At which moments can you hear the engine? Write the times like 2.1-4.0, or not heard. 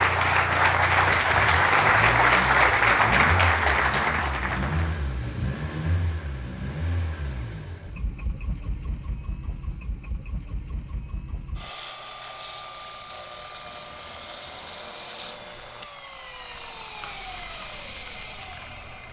0.0-19.0.